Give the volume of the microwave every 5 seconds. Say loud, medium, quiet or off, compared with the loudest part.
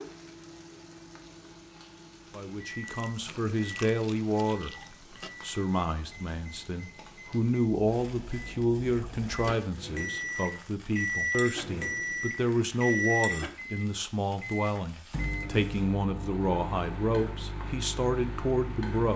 quiet, quiet, loud, medium.